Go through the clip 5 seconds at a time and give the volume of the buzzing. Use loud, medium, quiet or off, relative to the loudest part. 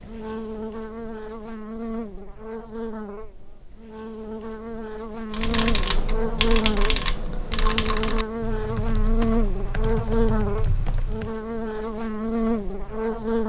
medium, loud, loud.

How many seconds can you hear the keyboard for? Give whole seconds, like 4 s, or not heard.
6 s.